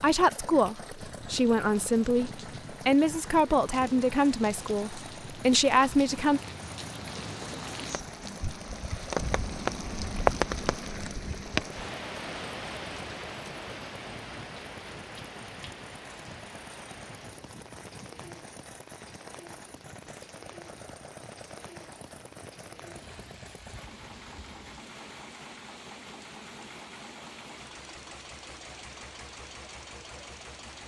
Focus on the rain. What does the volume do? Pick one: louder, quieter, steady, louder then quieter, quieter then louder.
louder then quieter.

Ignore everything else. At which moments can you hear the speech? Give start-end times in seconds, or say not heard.
0.0-6.4.